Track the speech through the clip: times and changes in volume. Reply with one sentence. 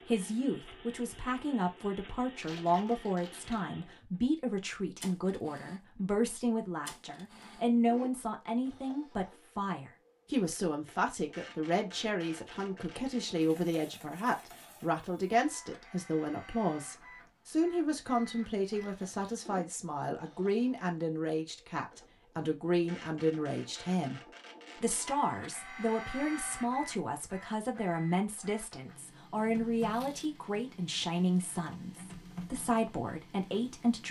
You can hear the speech from 0.0 to 34.0 s, at a steady volume.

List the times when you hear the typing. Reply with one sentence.
You can't hear the typing here.